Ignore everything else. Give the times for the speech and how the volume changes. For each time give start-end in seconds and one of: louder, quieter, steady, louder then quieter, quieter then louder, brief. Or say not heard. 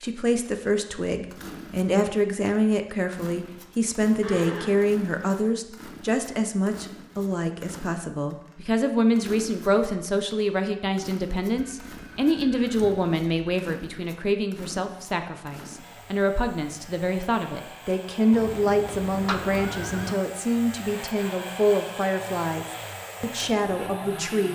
0.0-24.5 steady.